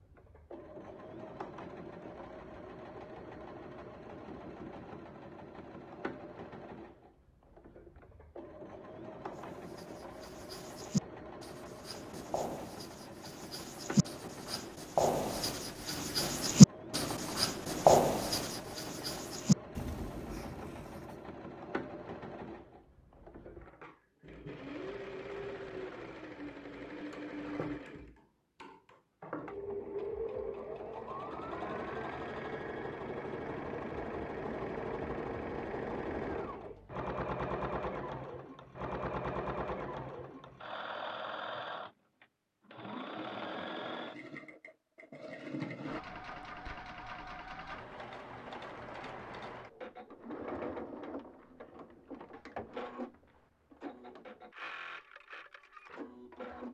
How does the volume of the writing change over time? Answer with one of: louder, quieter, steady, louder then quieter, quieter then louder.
louder then quieter.